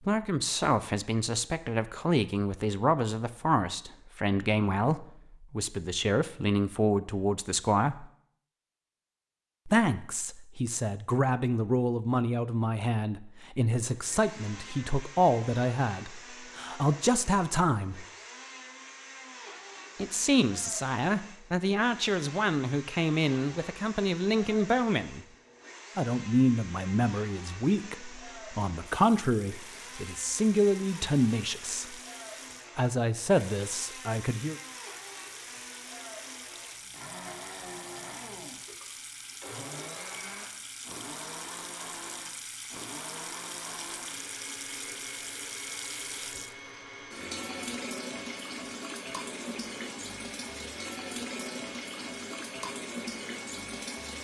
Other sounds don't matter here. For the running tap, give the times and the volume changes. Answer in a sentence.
You can hear the running tap from 28.9 to 54.1 s, getting louder.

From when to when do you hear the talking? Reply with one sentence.
You can hear the talking from 0.1 to 8.1 s, from 9.7 to 18.1 s, from 19.9 to 25.2 s, from 25.9 to 31.9 s and from 32.8 to 34.5 s.